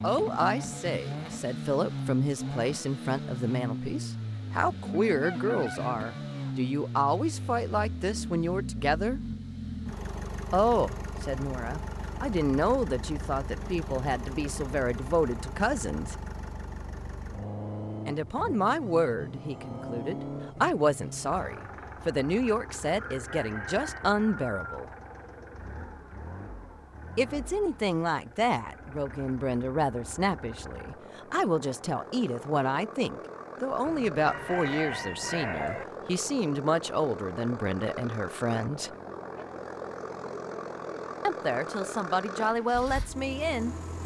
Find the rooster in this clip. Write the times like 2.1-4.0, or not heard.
5.0-6.5, 22.9-24.6, 33.9-35.9.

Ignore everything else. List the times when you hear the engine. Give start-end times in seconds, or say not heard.
0.0-44.0.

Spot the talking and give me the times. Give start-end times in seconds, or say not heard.
0.0-9.2, 10.5-16.1, 18.1-24.9, 27.1-38.9, 41.2-43.8.